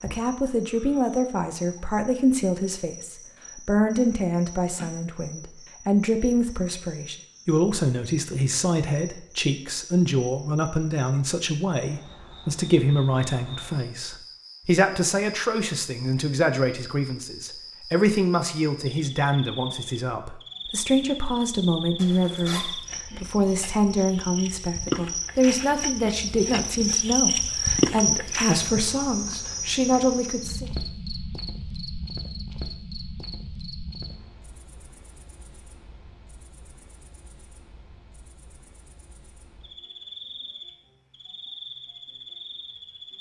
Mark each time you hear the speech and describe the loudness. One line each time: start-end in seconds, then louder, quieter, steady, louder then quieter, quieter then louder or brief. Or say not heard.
0.0-30.7 steady.